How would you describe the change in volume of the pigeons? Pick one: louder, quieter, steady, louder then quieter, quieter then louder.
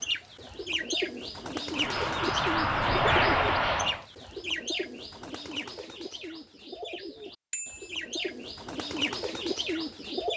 quieter then louder.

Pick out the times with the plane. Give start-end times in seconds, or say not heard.
1.7-4.0.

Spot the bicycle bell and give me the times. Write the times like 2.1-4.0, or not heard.
7.5-8.0.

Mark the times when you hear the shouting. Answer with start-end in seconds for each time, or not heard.
not heard.